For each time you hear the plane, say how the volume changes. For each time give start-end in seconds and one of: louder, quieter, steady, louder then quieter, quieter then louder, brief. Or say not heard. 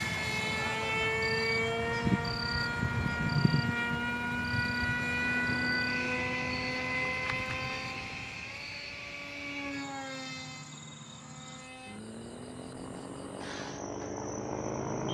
0.0-15.0 quieter.